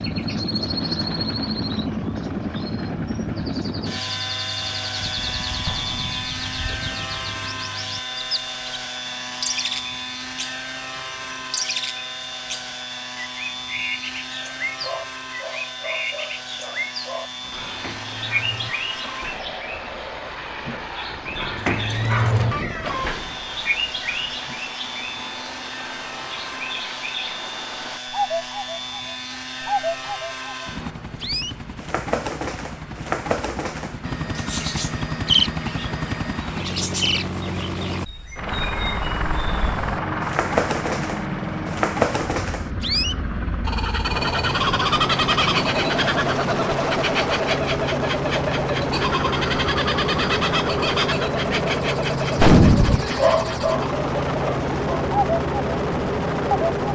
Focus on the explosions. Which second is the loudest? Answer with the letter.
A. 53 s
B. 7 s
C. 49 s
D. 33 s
A.